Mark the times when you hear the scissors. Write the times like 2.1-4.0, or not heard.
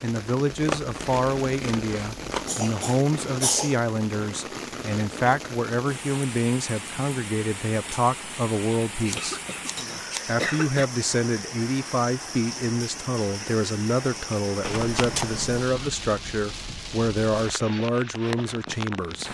0.5-2.5, 9.1-10.2, 14.6-15.7.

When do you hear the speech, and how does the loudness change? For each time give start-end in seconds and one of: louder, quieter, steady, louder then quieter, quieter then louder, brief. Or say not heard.
0.0-9.4 steady
10.2-19.3 steady.